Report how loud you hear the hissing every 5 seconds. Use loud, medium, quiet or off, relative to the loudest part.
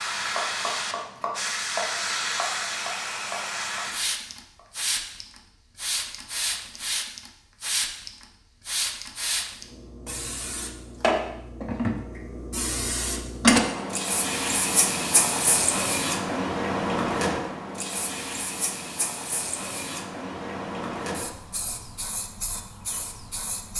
loud, medium, loud, loud, medium.